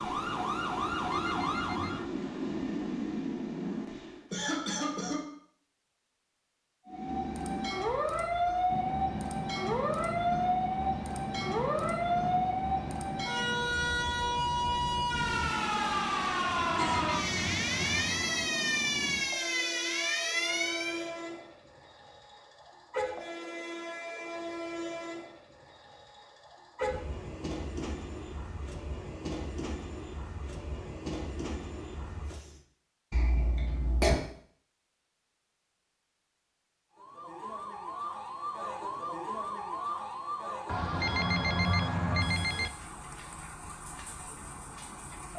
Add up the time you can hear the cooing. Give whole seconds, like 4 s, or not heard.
not heard.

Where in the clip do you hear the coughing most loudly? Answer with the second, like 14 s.
34 s.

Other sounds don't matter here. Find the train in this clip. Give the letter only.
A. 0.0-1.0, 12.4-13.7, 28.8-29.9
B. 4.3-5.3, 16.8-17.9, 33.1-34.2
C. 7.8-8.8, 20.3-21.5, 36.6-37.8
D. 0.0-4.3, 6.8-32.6
D.